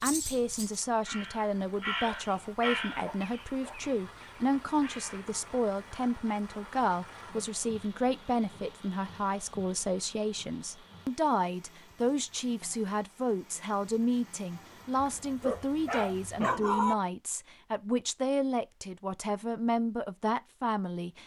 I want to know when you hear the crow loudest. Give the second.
3 s.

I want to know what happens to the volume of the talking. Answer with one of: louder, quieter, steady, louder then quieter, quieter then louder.
steady.